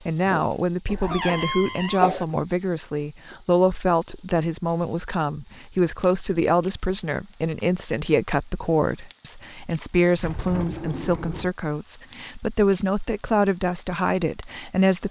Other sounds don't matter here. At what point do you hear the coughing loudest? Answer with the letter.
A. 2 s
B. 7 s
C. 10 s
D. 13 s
A.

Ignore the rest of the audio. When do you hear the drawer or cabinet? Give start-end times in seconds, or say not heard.
1.0-2.1, 10.2-11.6.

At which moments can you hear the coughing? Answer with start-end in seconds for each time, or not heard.
0.2-2.2.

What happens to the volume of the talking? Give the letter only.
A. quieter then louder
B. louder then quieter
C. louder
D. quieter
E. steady
E.